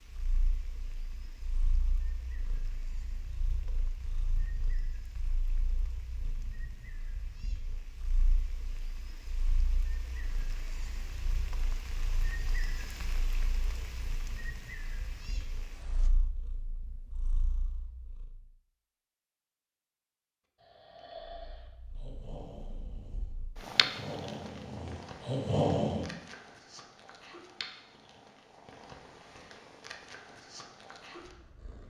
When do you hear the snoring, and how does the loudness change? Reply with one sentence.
The snoring can be heard from 20.6 to 26.1 s, getting quieter then louder.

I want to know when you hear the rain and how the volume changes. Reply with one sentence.
The rain can be heard from 0.0 to 16.1 s, getting louder.